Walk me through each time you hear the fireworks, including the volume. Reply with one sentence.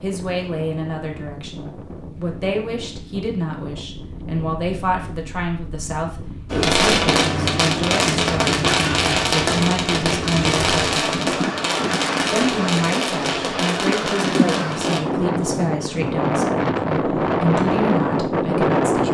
The fireworks can be heard from 6.5 to 15.0 s, getting quieter.